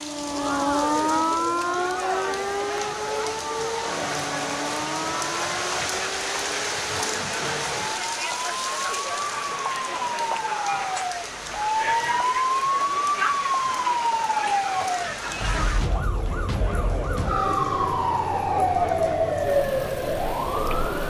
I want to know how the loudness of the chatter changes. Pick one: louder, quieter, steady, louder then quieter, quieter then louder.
steady.